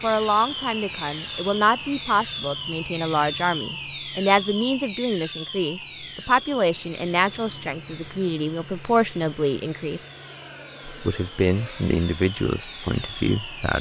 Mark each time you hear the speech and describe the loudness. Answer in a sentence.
You can hear the speech from 0.0 to 10.0 s, at a steady volume; and briefly from 10.8 to 13.7 s.